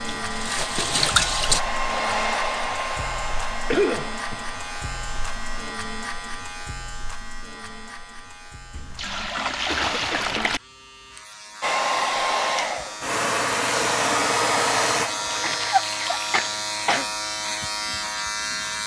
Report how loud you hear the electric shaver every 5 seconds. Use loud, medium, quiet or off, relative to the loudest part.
medium, medium, medium, loud.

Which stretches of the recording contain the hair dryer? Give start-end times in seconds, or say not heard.
0.1-5.8, 11.6-15.7.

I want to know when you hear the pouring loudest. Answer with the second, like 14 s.
1 s.